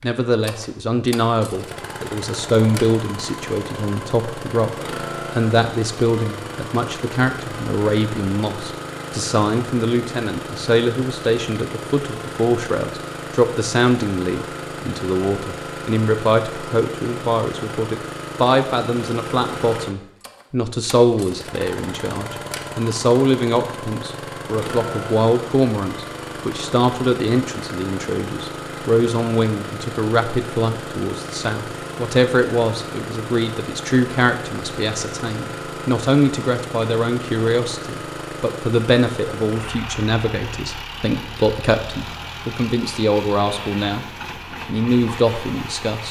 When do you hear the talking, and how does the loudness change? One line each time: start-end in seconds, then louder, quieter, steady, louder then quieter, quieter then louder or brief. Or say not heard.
0.0-44.0 steady
44.6-46.0 brief.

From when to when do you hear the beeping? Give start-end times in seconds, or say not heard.
not heard.